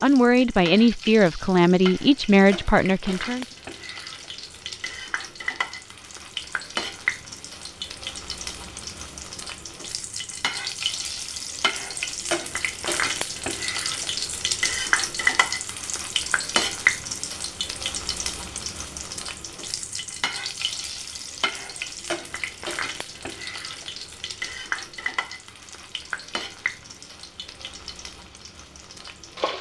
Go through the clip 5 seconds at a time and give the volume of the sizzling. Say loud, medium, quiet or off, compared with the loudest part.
medium, medium, loud, loud, medium, medium.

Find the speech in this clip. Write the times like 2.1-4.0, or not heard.
0.0-3.5.